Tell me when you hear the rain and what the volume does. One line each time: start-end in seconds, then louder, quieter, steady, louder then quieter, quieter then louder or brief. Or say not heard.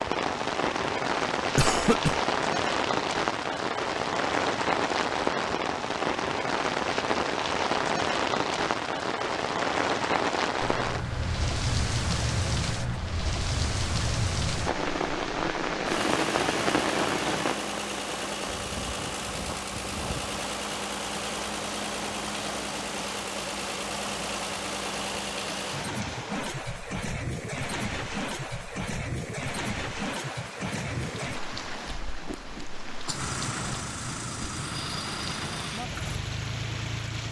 0.0-37.2 quieter.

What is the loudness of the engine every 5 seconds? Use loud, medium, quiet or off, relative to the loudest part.
off, off, loud, loud, loud, loud, loud, loud.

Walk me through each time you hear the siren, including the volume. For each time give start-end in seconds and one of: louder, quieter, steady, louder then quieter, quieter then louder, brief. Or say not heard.
not heard.